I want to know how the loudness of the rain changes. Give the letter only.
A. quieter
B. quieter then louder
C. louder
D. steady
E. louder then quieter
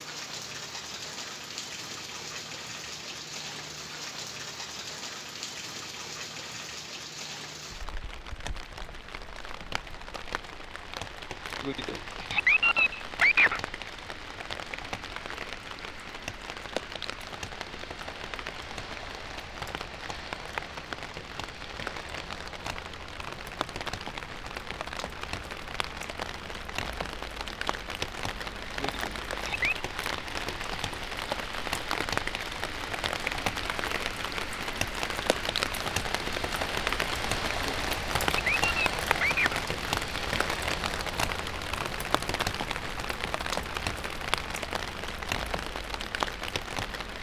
C.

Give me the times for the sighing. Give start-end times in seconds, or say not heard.
11.6-13.6, 28.8-29.8, 37.6-39.6.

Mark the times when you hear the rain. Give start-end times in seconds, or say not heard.
0.0-47.1.